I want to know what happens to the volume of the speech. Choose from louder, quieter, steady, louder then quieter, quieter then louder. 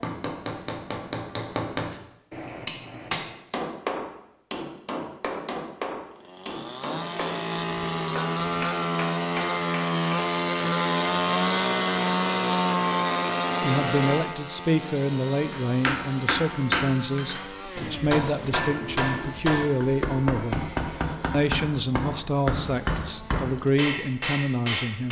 steady.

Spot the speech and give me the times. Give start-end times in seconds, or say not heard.
13.6-20.6, 21.3-25.0.